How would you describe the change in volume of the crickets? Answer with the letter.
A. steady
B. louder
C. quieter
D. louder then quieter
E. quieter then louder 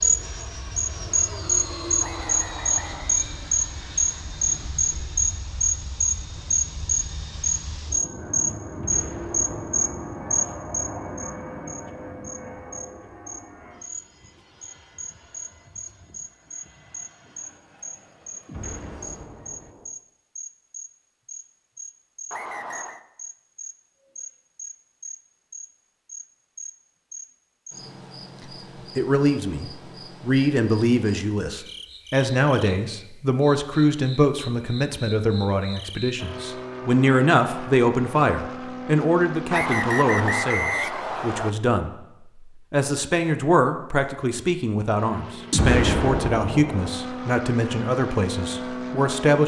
C.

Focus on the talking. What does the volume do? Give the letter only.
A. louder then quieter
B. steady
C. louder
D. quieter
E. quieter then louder
B.